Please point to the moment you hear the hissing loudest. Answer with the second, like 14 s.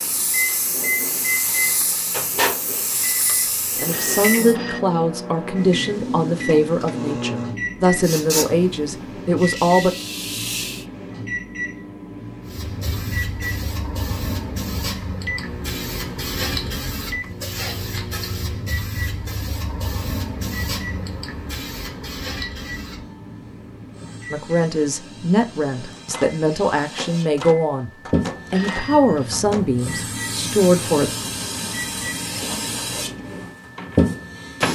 34 s.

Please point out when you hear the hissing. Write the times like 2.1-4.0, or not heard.
0.0-4.5, 8.0-10.8, 12.4-34.6.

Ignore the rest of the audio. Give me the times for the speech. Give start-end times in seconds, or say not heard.
3.4-9.9, 24.3-27.9, 28.5-31.1.